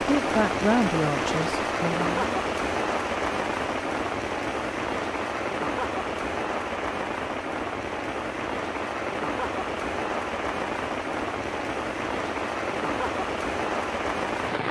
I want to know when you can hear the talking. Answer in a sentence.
The talking can be heard from 0.0 to 2.4 s.